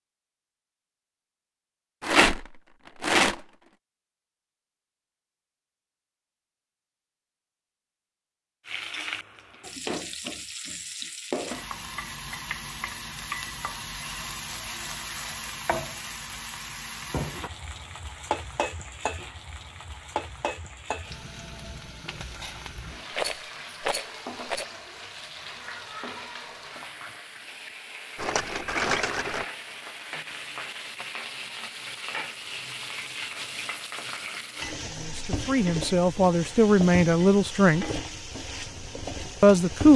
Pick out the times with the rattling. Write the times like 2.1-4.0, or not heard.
2.0-3.4, 23.1-24.6, 28.1-29.4.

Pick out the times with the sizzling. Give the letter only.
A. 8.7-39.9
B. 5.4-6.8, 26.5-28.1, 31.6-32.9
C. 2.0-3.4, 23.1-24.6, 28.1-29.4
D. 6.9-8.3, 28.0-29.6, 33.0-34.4
A.